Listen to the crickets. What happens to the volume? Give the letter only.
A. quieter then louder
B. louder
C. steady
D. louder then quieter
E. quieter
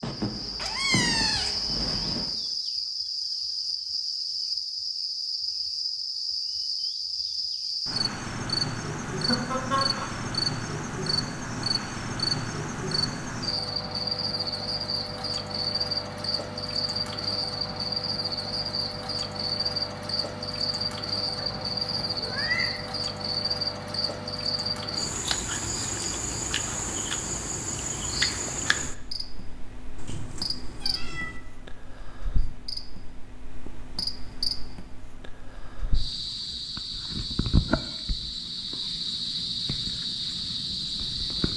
C.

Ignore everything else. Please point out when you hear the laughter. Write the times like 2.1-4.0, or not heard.
9.1-10.1.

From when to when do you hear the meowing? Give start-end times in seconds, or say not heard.
0.0-2.3, 21.4-22.7, 29.9-31.4.